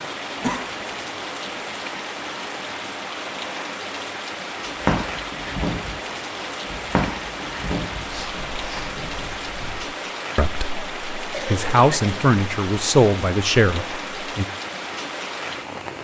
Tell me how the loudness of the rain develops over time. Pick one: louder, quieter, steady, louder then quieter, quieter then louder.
steady.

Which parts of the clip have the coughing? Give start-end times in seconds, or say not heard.
0.4-0.8, 11.3-12.2.